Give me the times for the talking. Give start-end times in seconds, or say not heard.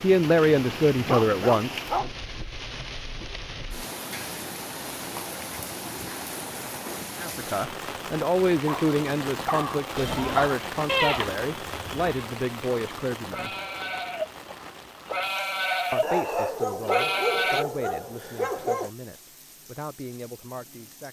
0.0-2.1, 7.2-13.6, 15.9-21.0.